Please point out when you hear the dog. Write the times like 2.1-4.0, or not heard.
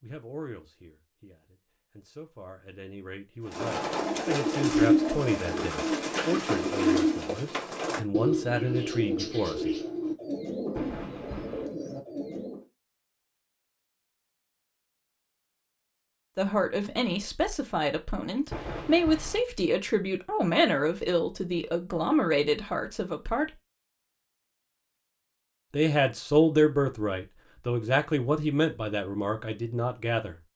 not heard.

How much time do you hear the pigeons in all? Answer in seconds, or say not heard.
9 s.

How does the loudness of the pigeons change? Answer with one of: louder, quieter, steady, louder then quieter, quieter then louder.
quieter.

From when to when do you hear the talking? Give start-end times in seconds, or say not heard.
0.0-9.8, 16.4-23.6, 25.7-30.4.